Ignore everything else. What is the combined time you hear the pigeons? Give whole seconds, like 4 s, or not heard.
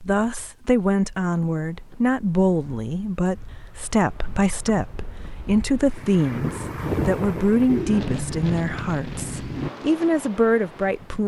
2 s.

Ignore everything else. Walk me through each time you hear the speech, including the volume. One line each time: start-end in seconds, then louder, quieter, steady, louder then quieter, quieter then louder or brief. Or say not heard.
0.0-11.2 steady.